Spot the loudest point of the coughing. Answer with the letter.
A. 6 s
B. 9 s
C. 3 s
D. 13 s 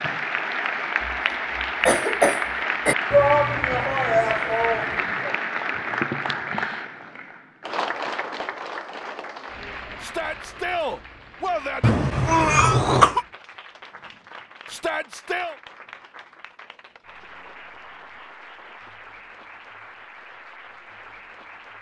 D.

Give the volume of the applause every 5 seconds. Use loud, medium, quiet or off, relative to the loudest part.
loud, loud, quiet, quiet, quiet.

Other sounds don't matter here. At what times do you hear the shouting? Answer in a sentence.
You can hear the shouting from 3.1 to 5.3 s, from 10.0 to 11.9 s and from 14.7 to 15.6 s.